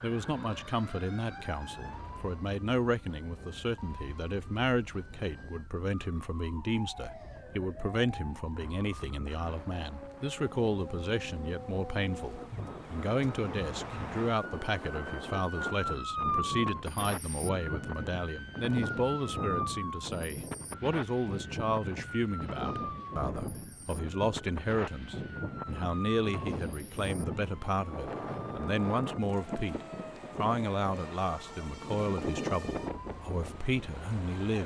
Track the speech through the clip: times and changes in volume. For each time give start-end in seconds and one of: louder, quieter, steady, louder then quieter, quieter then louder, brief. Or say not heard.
0.0-34.6 steady.